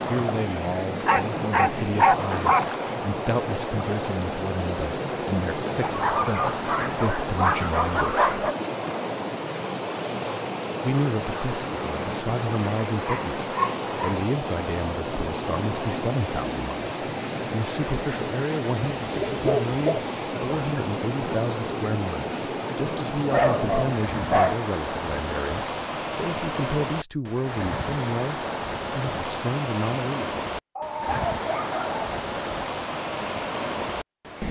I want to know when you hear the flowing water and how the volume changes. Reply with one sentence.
You can hear the flowing water from 0.0 to 34.4 s, at a steady volume.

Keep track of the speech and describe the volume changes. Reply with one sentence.
The volume of the speech stays about the same.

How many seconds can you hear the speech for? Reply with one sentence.
You can hear the speech for 28 seconds altogether.